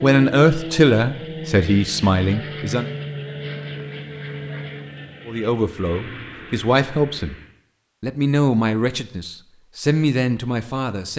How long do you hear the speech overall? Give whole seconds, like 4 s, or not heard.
8 s.